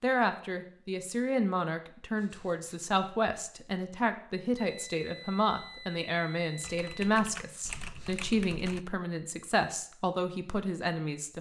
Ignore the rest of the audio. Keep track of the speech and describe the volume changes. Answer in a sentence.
The loudness of the speech stays about the same.